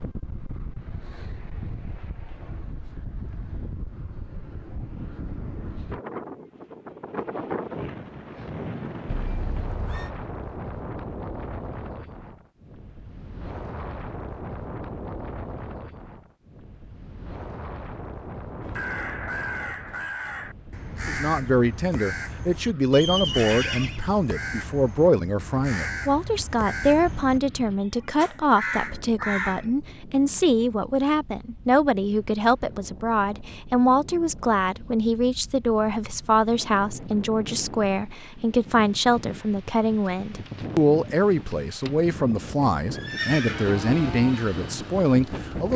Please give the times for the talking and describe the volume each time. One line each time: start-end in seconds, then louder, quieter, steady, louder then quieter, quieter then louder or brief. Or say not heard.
21.1-45.7 steady.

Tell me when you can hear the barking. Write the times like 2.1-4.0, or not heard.
not heard.